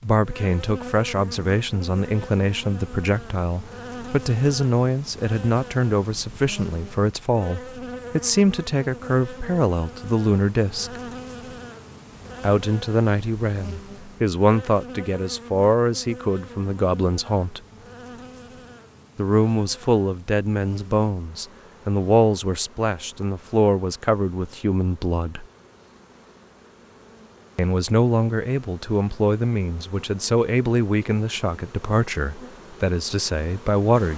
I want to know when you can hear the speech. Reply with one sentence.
The speech can be heard from 0.0 to 11.0 s, from 12.4 to 17.6 s, from 19.1 to 25.4 s and from 27.6 to 34.1 s.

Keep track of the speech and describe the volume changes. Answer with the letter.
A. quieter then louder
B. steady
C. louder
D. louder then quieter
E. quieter
B.